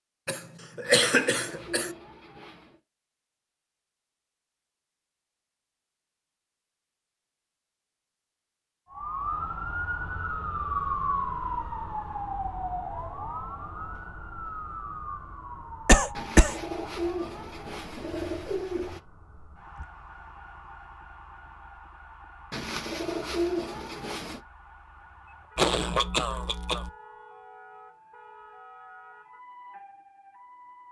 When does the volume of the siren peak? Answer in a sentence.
The loudest moment of the siren is at 11 seconds.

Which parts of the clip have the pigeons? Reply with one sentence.
The pigeons can be heard from 0.8 to 2.8 s, from 16.1 to 19.0 s and from 22.5 to 24.4 s.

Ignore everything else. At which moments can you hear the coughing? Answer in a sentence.
The coughing can be heard from 0.2 to 1.9 s, from 15.8 to 16.6 s and from 25.6 to 26.9 s.